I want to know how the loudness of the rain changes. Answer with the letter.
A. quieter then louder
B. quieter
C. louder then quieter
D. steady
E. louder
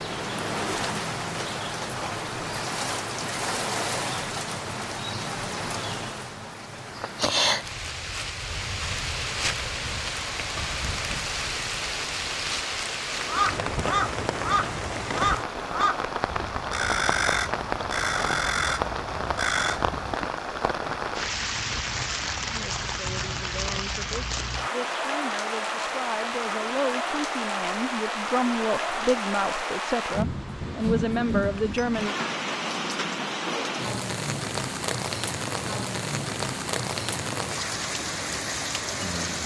D.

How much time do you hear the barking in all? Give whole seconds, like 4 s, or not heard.
not heard.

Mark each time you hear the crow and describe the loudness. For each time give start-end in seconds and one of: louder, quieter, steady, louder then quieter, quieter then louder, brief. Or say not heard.
13.2-20.2 steady.